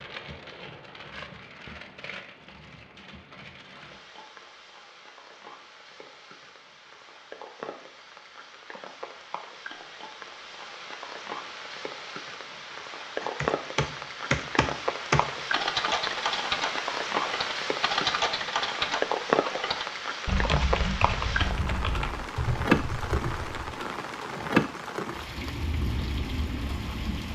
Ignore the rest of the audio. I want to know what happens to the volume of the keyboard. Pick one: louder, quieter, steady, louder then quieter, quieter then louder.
quieter.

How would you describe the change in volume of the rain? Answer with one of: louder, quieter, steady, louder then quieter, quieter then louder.
louder.